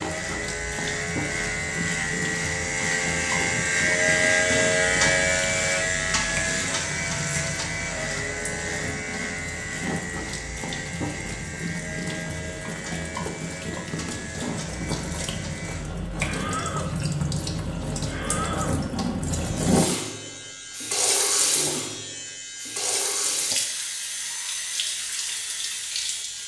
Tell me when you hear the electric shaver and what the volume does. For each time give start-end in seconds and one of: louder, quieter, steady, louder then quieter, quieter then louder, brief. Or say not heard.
0.0-26.4 quieter.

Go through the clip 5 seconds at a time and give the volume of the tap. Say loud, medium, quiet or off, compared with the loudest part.
medium, medium, medium, loud, loud, medium.